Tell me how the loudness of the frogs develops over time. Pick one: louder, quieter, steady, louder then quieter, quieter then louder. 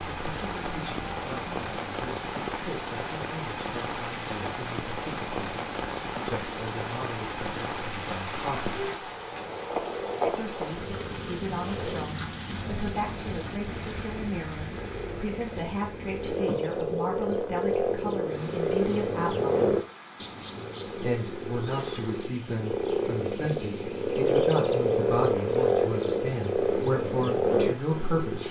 louder.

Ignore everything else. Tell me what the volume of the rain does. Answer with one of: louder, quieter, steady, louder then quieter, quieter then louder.
quieter.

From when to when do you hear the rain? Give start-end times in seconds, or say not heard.
0.0-28.4.